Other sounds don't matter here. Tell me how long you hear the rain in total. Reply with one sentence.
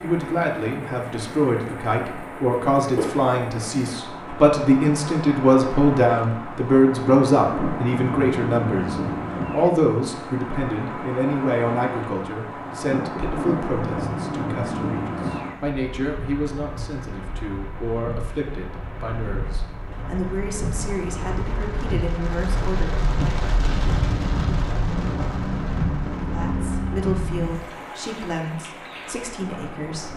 The rain can be heard for 30 seconds in total.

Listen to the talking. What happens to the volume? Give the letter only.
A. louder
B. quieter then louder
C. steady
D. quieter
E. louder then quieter
D.